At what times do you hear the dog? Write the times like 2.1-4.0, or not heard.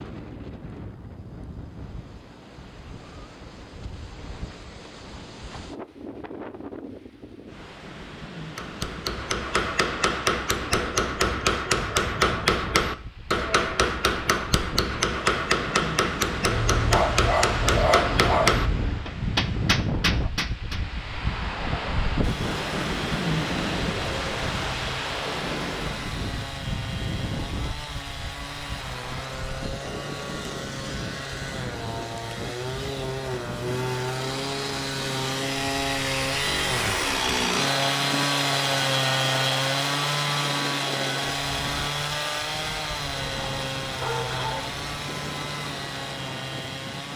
16.5-19.0, 43.2-44.8.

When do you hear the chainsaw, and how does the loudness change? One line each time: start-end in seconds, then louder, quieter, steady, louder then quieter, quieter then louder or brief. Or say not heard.
22.2-47.1 louder then quieter.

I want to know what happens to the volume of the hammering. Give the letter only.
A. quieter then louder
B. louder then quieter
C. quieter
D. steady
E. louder
D.